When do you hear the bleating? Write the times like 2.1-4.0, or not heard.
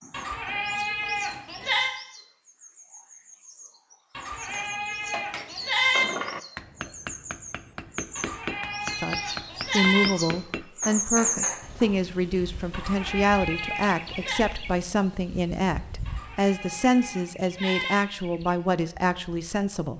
0.1-1.9, 4.2-6.0, 8.2-10.1, 12.7-14.4, 16.1-17.9.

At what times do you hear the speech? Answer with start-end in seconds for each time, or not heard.
9.0-19.9.